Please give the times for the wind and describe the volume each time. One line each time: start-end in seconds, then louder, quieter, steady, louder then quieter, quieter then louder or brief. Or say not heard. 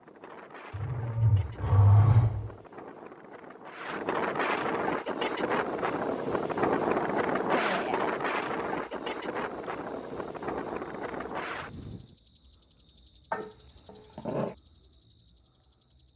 0.0-12.2 louder then quieter.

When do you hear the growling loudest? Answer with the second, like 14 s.
2 s.